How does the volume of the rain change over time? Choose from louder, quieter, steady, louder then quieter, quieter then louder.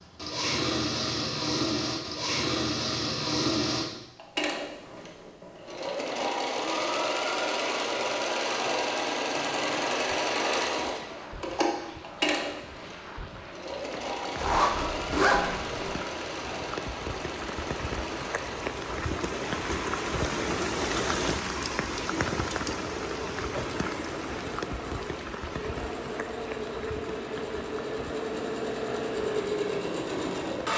louder then quieter.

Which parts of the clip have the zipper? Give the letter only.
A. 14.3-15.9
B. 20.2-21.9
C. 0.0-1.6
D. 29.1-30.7
A.